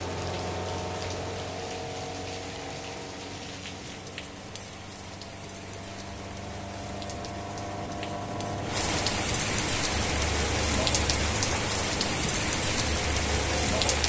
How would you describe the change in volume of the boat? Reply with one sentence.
The loudness of the boat goes down, then up.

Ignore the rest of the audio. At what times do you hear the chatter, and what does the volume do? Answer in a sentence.
The chatter can't be heard in this clip.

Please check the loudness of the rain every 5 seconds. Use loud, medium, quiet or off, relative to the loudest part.
quiet, medium, loud.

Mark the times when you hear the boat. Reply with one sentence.
You can hear the boat from 0.0 to 14.0 s.